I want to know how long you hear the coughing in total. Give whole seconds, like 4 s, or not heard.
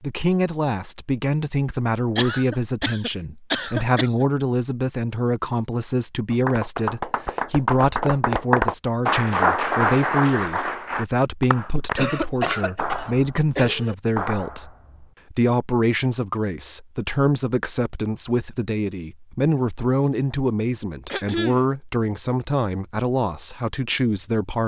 5 s.